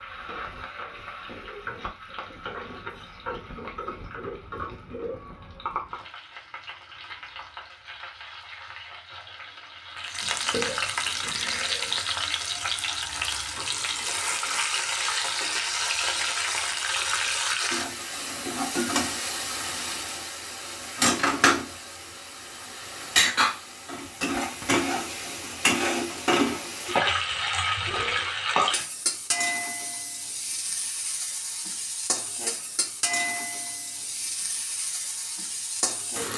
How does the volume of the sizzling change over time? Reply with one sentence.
The volume of the sizzling goes up, then down.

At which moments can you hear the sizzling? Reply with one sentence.
The sizzling can be heard from 0.0 to 36.3 s.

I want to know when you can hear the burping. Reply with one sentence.
You can hear the burping from 10.2 to 12.0 s and from 27.9 to 28.3 s.